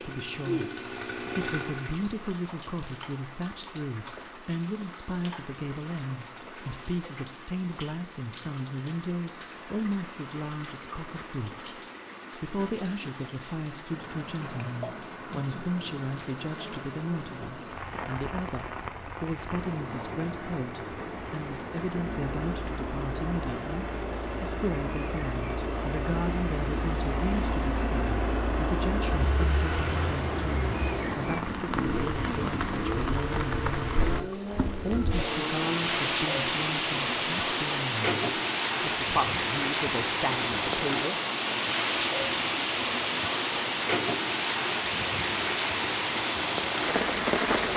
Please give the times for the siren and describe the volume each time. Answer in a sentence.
You can't hear the siren here.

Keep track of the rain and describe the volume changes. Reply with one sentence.
The loudness of the rain goes up.